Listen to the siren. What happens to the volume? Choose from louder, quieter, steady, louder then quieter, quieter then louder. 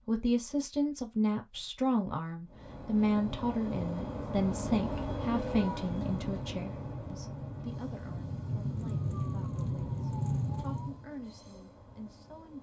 louder.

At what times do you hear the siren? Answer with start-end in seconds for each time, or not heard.
5.5-11.1.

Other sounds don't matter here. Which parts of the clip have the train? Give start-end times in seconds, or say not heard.
2.5-12.5.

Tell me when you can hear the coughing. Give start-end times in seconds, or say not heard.
not heard.